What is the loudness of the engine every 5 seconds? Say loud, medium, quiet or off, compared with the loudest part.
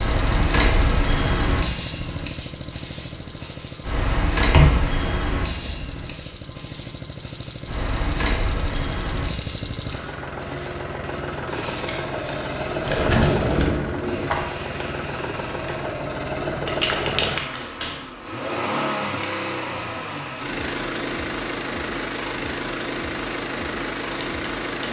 medium, medium, loud, loud, loud.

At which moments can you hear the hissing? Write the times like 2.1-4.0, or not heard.
0.0-24.8.